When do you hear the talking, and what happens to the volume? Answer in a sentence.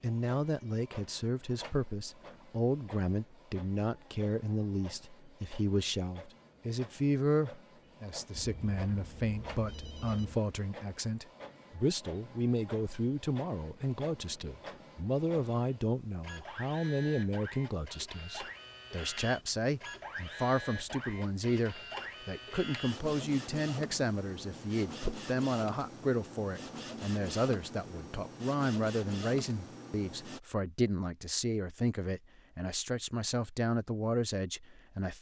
You can hear the talking from 0.0 to 35.1 s, at a steady volume.